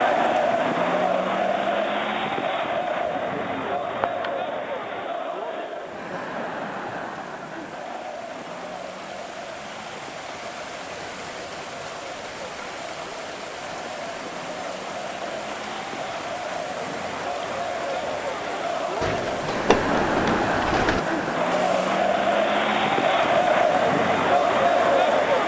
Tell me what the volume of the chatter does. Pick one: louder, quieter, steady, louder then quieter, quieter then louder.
quieter then louder.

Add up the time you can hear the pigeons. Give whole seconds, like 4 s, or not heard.
4 s.